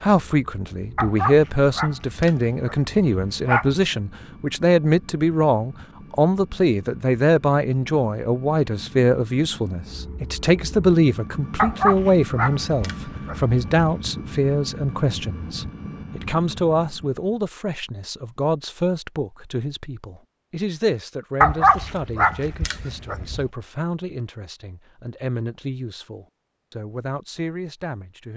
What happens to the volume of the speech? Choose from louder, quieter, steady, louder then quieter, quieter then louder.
quieter.